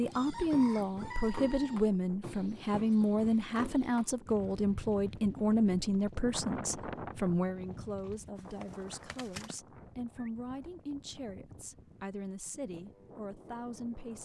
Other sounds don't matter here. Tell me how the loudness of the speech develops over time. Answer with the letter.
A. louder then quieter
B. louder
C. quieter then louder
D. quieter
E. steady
D.